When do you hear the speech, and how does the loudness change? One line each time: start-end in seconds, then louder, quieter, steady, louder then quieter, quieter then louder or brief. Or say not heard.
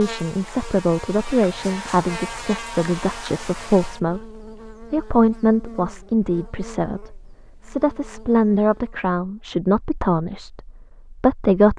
0.0-11.7 steady.